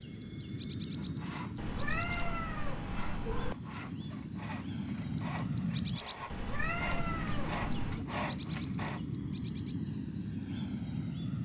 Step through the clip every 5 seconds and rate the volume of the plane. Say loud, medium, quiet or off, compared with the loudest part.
medium, loud, loud.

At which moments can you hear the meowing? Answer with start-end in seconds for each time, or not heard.
1.6-3.5, 6.3-8.1.